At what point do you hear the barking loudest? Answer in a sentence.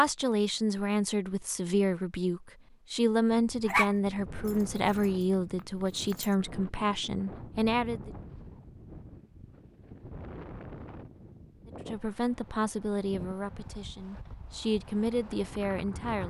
The loudest moment of the barking is at 4 seconds.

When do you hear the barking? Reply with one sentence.
You can hear the barking from 3.6 to 6.3 s.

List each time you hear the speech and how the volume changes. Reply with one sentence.
The speech can be heard from 0.0 to 8.1 s, at a steady volume; and from 11.7 to 16.2 s, getting quieter then louder.